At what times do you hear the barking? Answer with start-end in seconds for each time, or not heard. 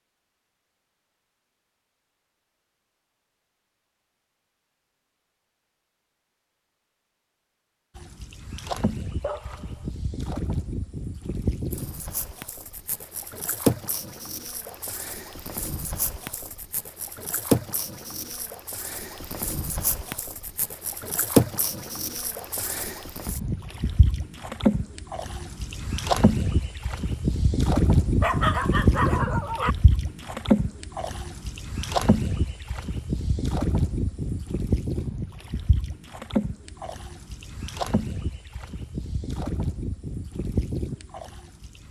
9.2-9.9, 28.2-29.8.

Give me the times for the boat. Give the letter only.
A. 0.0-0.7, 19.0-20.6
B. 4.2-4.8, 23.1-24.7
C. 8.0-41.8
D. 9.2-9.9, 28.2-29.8
C.